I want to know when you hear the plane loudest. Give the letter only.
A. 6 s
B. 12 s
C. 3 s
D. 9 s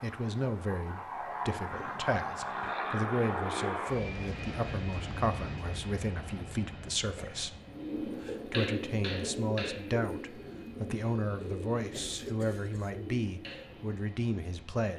C.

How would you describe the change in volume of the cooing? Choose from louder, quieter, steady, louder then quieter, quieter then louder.
quieter.